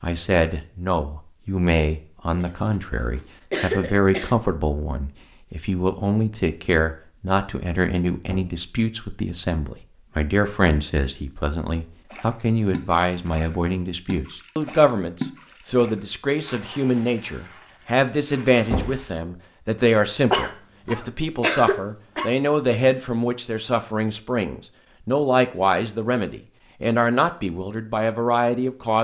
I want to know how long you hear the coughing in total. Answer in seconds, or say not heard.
4 s.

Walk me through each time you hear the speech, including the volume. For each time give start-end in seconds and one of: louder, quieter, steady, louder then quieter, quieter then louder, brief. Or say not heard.
0.0-28.9 steady.